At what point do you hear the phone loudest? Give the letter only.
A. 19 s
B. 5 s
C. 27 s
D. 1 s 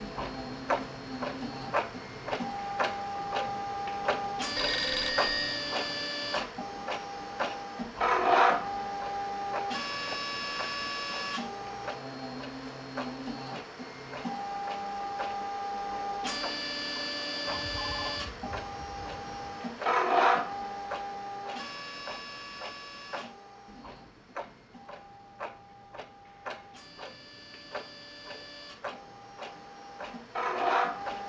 B.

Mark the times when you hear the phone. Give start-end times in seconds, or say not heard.
4.5-5.7, 17.4-19.6.